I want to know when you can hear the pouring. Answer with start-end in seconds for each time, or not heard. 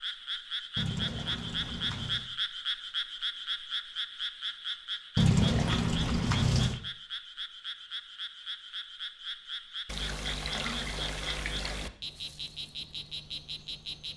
0.8-2.3, 5.2-6.8, 9.8-11.9.